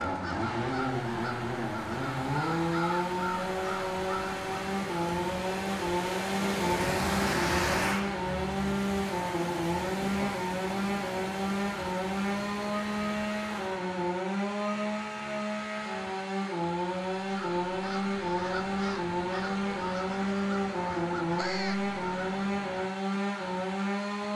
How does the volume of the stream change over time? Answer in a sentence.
The loudness of the stream goes up, then down.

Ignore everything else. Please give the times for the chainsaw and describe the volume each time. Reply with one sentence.
The chainsaw can be heard from 0.0 to 24.3 s, at a steady volume.